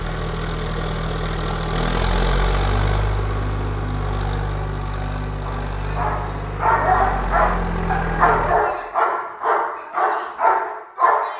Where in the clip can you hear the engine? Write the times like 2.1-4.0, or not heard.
0.0-8.6.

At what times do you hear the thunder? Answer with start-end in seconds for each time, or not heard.
not heard.